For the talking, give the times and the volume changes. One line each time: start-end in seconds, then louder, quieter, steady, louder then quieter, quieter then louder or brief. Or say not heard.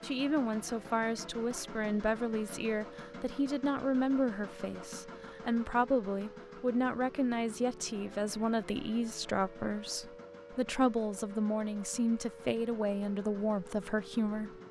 0.0-14.6 steady.